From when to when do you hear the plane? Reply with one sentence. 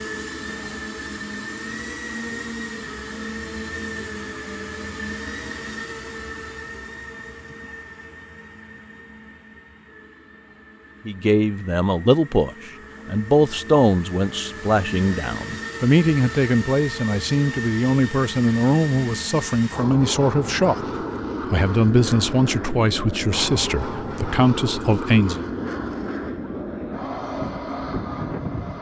The plane can be heard from 0.0 to 28.7 s.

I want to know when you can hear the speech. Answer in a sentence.
The speech can be heard from 11.1 to 25.4 s.